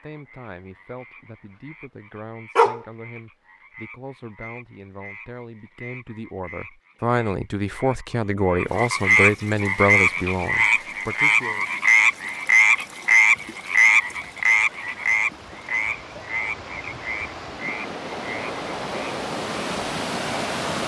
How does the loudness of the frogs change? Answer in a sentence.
The volume of the frogs goes up, then down.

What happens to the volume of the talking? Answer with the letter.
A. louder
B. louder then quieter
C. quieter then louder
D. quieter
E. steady
A.